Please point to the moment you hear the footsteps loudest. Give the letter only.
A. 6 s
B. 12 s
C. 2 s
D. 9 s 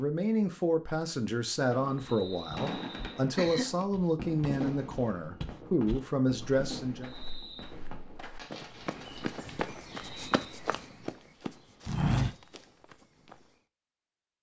B.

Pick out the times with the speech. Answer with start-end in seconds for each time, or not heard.
0.0-7.1.